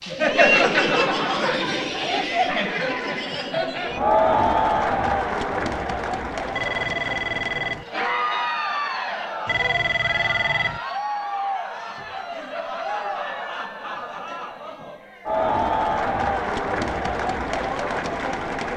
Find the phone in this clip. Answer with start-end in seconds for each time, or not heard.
6.5-7.8, 9.4-10.8.